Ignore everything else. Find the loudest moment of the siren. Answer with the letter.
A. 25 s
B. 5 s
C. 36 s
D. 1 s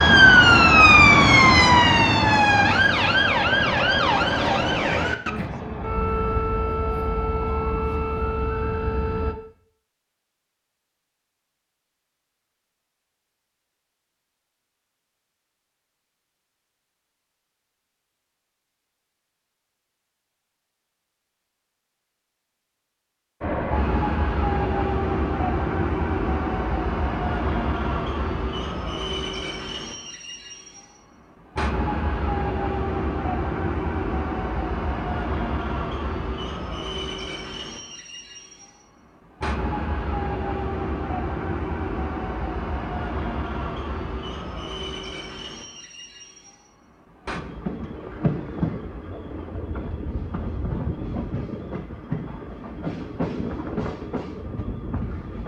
D.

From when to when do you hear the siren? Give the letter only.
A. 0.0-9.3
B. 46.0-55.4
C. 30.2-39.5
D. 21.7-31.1
A.